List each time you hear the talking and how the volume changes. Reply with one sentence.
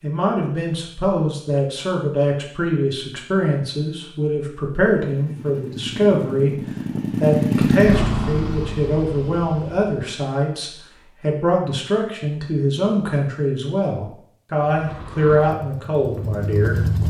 You can hear the talking from 0.0 to 6.6 s, at a steady volume; and from 7.2 to 17.0 s, at a steady volume.